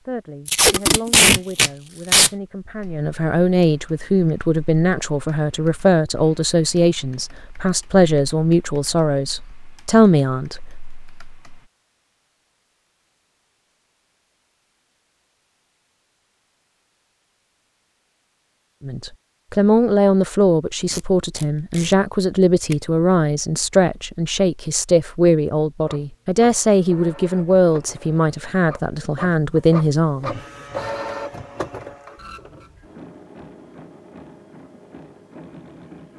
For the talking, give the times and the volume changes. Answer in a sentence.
You can hear the talking from 0.1 to 10.7 s, getting louder; and from 18.8 to 30.3 s, at a steady volume.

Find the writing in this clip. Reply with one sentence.
You can't hear the writing here.